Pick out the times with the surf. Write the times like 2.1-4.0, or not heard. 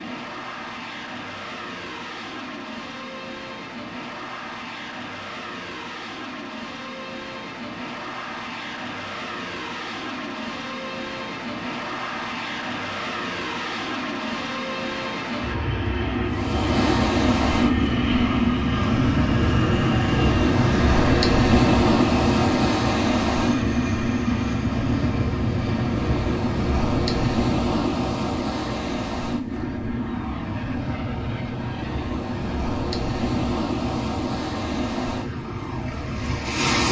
16.2-36.8.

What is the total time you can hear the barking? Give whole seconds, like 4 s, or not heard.
not heard.